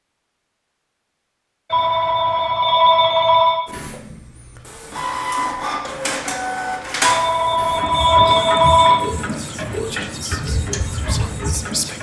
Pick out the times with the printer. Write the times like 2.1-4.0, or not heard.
3.6-11.9.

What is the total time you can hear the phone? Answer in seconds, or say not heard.
4 s.